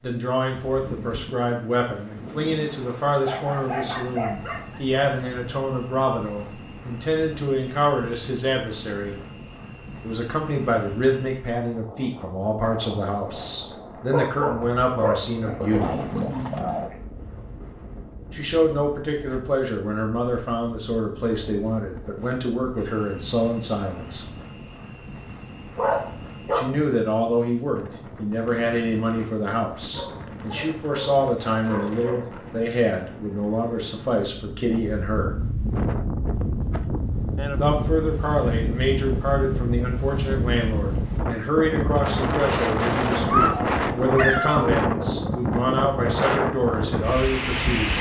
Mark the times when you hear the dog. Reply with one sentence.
You can hear the dog from 3.2 to 4.8 s, from 14.1 to 16.9 s, from 25.8 to 26.7 s, from 29.9 to 32.4 s and from 43.2 to 44.8 s.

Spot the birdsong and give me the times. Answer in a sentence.
The birdsong can't be heard in this clip.